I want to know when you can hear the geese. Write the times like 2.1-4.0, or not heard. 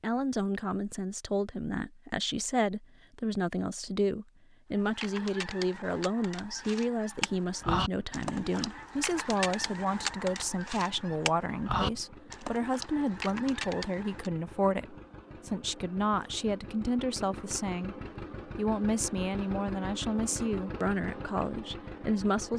4.8-14.3.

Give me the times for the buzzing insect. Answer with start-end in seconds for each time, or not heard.
not heard.